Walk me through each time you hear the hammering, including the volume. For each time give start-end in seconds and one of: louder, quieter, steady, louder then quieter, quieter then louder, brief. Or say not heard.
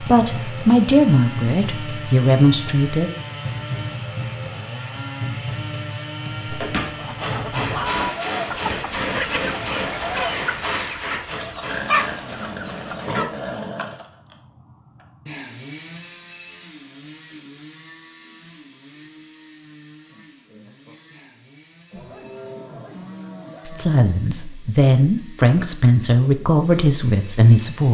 6.5-13.2 quieter.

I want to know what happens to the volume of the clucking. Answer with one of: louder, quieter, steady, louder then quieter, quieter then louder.
quieter then louder.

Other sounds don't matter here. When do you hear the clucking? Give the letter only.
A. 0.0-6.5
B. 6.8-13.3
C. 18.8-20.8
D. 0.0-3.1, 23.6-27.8
B.